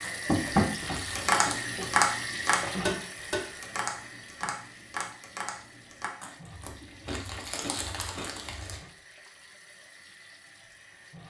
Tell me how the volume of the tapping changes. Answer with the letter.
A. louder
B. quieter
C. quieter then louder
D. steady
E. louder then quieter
B.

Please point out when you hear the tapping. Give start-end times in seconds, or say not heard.
0.2-6.1.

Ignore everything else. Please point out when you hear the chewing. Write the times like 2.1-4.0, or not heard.
0.0-1.6, 6.2-8.8.